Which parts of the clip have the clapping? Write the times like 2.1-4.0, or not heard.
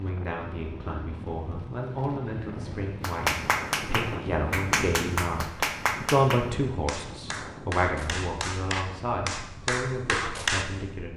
3.0-10.7.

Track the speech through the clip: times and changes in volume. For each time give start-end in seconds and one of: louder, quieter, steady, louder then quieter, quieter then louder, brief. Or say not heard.
0.0-11.1 louder then quieter.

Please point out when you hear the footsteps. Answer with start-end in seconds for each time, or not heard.
not heard.